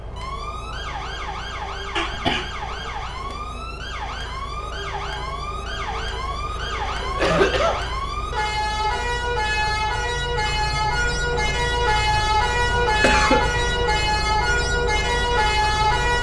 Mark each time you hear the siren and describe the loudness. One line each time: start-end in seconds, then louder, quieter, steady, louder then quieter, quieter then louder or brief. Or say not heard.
0.0-16.1 louder.